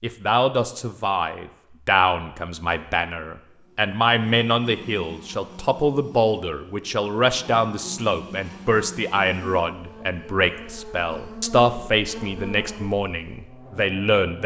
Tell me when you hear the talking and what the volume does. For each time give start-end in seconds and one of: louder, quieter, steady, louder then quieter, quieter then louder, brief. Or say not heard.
0.0-14.4 steady.